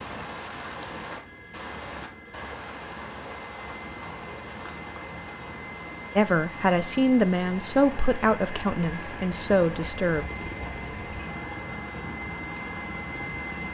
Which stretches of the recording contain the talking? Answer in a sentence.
The talking can be heard from 6.2 to 10.2 s.